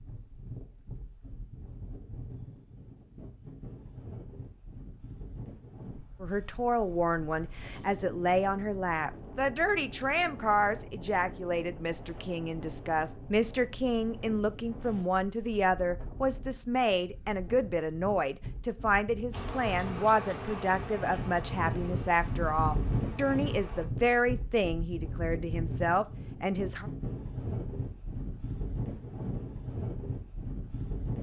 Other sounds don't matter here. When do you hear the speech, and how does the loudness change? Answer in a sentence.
The speech can be heard from 6.2 to 26.9 s, at a steady volume.